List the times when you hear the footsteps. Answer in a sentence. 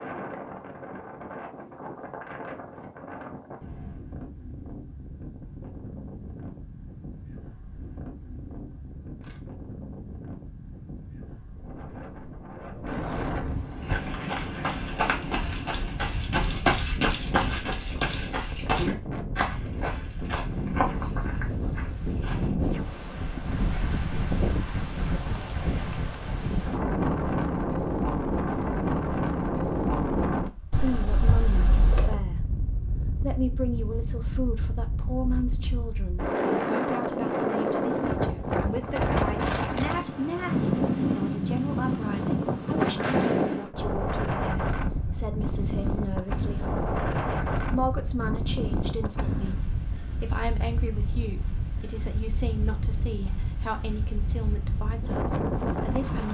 You can hear the footsteps from 13.8 to 22.6 s.